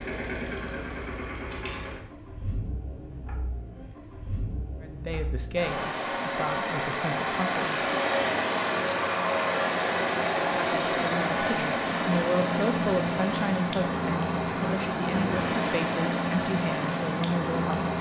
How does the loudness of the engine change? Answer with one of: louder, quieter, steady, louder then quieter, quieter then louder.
louder.